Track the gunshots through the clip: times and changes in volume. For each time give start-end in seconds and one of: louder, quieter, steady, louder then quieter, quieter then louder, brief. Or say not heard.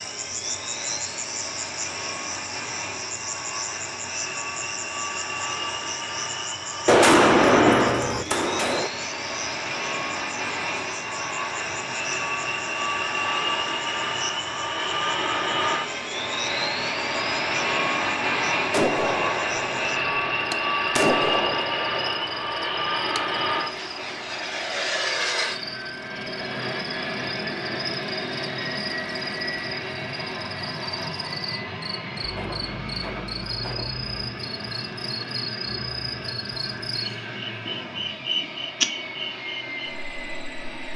6.8-8.9 brief
18.7-23.2 louder then quieter
32.2-34.2 brief.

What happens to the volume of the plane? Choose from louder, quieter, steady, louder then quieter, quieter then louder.
louder then quieter.